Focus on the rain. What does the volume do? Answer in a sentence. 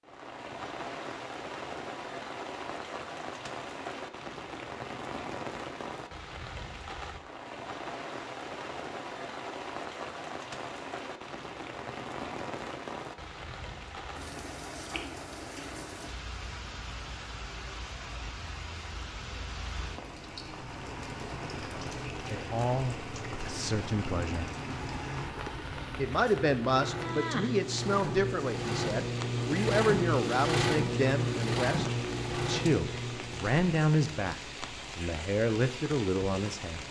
The loudness of the rain stays about the same.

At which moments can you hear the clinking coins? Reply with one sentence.
The clinking coins can't be heard in this clip.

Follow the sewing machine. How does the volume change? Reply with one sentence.
The loudness of the sewing machine goes up.